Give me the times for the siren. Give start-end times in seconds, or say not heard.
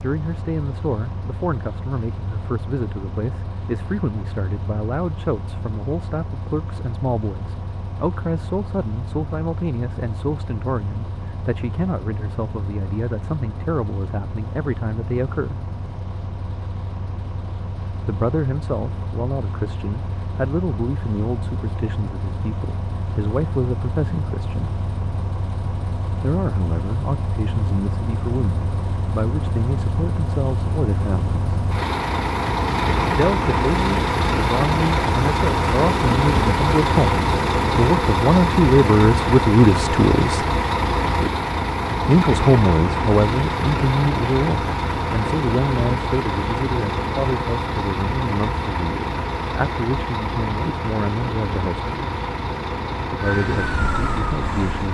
53.1-54.8.